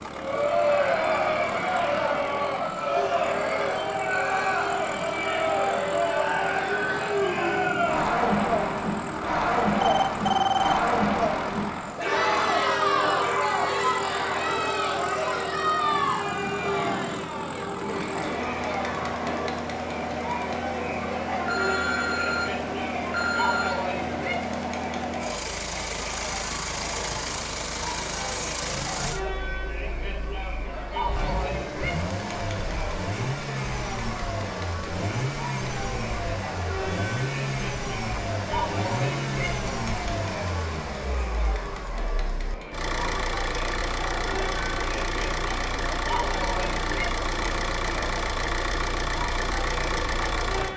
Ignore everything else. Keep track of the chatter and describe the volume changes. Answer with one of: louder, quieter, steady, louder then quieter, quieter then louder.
quieter.